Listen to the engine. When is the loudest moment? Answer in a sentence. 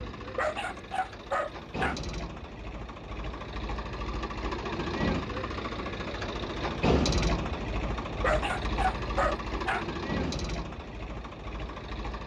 The volume of the engine peaks at 7 seconds.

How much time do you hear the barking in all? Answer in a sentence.
You can hear the barking for 3 seconds altogether.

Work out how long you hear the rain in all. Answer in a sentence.
You can't hear the rain here.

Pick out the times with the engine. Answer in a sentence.
You can hear the engine from 0.0 to 12.2 s.